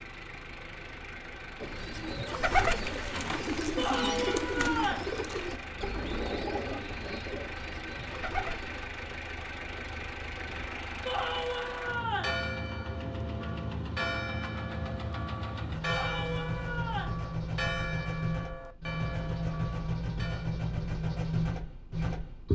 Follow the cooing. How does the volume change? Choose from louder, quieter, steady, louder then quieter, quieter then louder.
quieter.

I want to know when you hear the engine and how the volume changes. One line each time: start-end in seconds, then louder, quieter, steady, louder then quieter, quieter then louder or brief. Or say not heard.
0.0-22.4 louder.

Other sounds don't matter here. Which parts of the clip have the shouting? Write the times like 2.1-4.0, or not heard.
3.8-5.1, 11.1-12.4, 15.8-17.2.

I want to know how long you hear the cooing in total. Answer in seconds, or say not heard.
7 s.